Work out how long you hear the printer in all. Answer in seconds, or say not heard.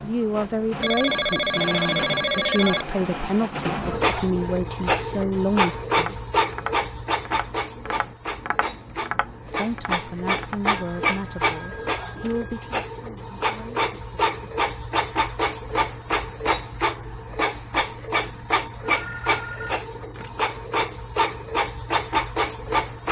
23 s.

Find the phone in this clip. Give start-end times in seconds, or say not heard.
0.8-2.9, 10.8-12.8, 18.9-20.3.